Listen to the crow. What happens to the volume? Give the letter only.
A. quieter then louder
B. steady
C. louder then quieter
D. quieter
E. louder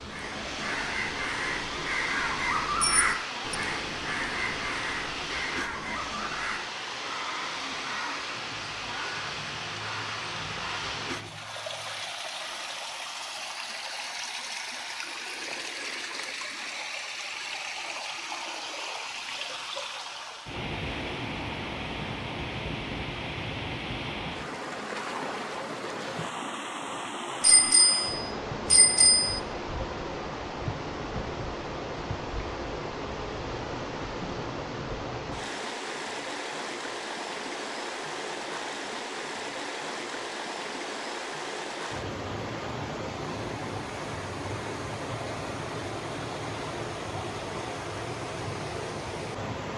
D.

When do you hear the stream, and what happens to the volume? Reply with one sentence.
You can hear the stream from 0.0 to 49.7 s, at a steady volume.